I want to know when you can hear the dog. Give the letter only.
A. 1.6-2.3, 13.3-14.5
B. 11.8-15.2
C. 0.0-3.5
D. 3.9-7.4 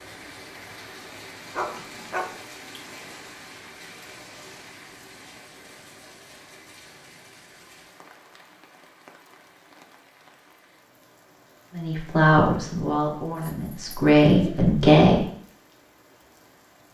A.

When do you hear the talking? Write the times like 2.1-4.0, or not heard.
11.8-15.2.